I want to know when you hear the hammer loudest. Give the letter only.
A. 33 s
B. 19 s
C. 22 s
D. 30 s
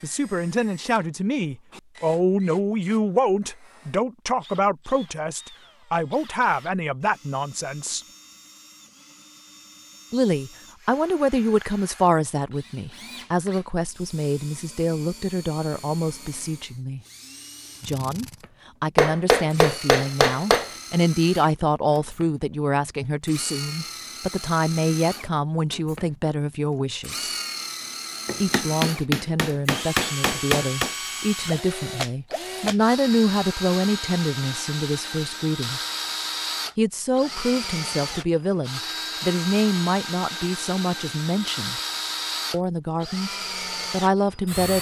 B.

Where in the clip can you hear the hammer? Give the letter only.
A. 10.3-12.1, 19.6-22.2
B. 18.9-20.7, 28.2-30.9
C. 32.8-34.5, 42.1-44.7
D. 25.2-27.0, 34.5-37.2
B.